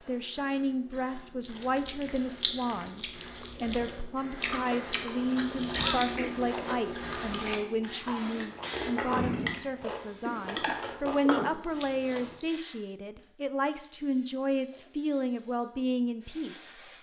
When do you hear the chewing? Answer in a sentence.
You can hear the chewing from 1.4 to 12.4 s.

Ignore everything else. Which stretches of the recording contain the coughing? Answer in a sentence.
You can hear the coughing from 5.7 to 6.3 s and from 10.2 to 11.3 s.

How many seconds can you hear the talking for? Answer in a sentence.
You can hear the talking for 17 seconds altogether.